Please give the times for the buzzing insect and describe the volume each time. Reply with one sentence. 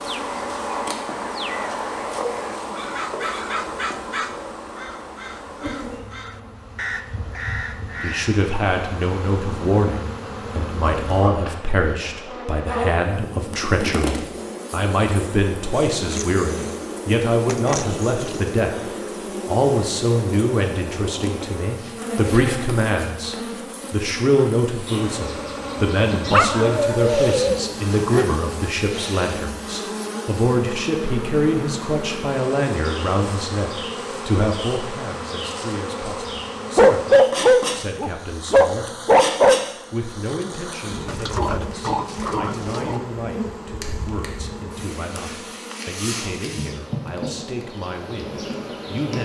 You can hear the buzzing insect from 0.0 to 49.1 s, at a steady volume.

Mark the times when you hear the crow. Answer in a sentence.
You can hear the crow from 0.1 to 8.4 s.